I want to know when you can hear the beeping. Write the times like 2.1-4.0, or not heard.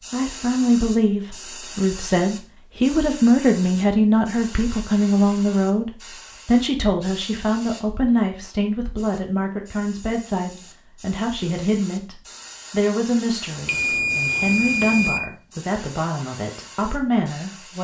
13.7-15.2.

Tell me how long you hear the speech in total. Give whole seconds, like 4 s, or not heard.
18 s.